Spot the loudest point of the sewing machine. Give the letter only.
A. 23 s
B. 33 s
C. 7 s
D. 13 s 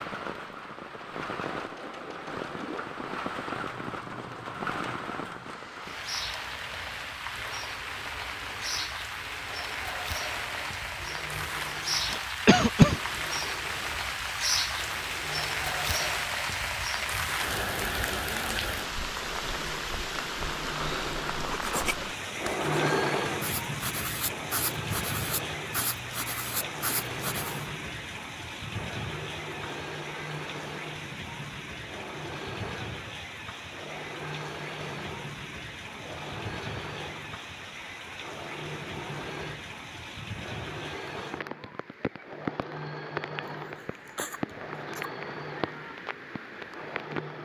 A.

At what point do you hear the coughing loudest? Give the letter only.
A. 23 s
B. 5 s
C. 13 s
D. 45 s
C.